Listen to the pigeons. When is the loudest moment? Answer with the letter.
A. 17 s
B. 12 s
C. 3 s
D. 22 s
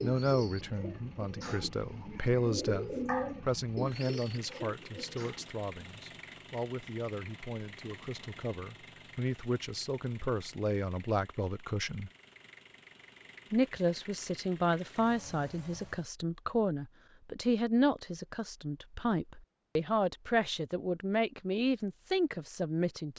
C.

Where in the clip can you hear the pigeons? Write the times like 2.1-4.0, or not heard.
0.0-5.5.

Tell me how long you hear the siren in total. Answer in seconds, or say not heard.
not heard.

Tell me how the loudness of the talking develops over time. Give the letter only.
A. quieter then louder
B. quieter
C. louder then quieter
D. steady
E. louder
A.